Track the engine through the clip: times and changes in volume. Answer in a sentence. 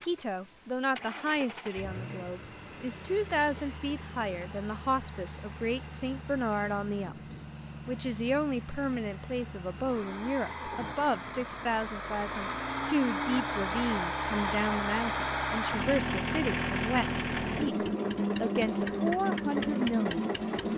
The engine can be heard from 0.0 to 20.7 s, getting louder.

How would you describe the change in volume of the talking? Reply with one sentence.
The volume of the talking stays about the same.